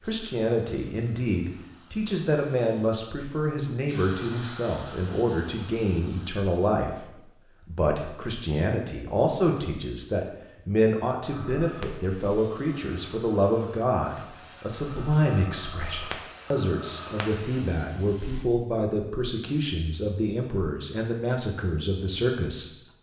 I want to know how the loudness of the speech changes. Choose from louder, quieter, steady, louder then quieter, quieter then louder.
steady.